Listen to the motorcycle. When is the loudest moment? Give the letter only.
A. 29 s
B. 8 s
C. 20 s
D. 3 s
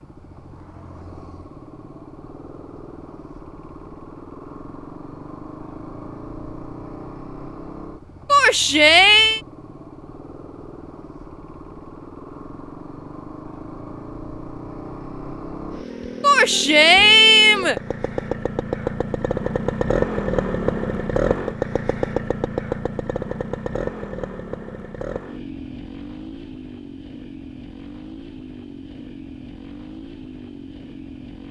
C.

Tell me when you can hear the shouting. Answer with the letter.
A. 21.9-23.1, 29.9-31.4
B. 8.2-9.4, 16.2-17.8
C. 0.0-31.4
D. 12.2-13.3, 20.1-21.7
B.